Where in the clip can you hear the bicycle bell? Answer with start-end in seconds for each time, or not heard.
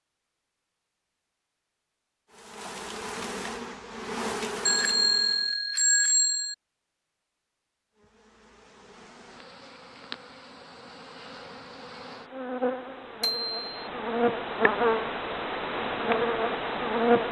4.7-6.5, 13.2-13.8.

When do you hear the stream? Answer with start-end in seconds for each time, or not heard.
not heard.